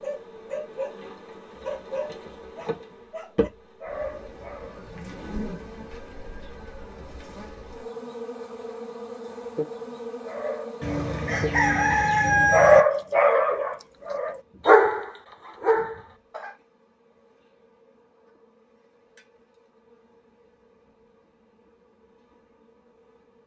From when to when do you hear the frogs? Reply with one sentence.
You can't hear the frogs here.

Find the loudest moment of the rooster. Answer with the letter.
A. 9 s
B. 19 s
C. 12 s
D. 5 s
C.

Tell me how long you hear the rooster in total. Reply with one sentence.
You can hear the rooster for 2 seconds altogether.